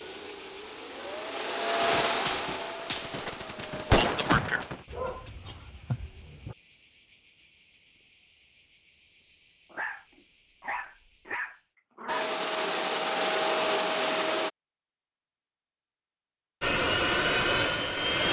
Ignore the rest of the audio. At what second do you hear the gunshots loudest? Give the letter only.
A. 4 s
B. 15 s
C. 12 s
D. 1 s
A.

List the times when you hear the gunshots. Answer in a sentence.
You can hear the gunshots from 1.8 to 4.8 s.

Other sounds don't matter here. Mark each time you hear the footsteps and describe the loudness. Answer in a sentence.
The footsteps can't be heard in this clip.